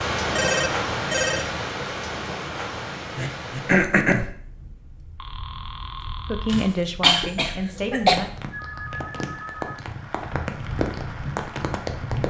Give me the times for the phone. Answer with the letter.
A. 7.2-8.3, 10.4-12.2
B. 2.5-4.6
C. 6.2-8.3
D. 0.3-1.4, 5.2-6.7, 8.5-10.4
D.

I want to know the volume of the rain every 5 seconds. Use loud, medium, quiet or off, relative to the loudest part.
loud, medium, loud.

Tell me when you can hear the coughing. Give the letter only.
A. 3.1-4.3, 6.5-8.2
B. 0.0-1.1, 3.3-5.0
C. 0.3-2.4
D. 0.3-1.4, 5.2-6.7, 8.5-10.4
A.